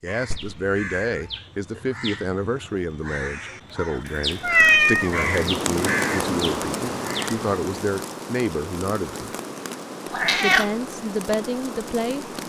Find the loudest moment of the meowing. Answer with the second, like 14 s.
5 s.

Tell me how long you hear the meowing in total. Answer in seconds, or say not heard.
2 s.